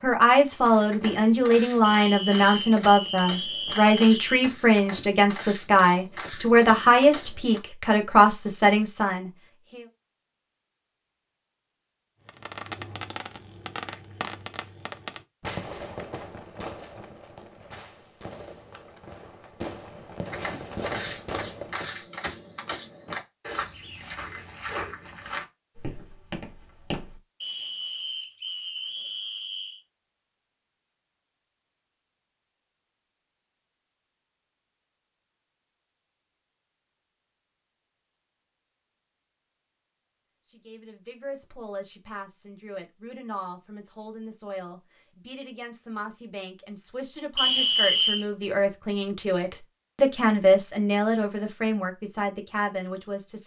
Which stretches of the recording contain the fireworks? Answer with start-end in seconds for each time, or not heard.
12.2-22.0.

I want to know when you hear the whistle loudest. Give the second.
48 s.